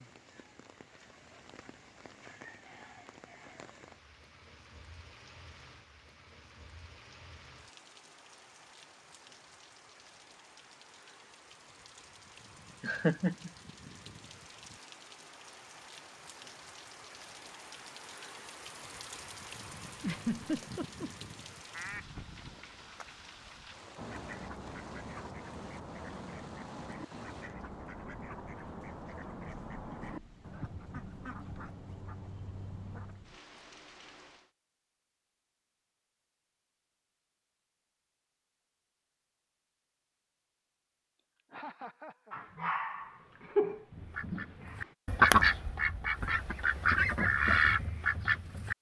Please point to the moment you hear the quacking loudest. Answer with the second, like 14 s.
45 s.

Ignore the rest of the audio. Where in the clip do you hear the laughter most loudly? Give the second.
13 s.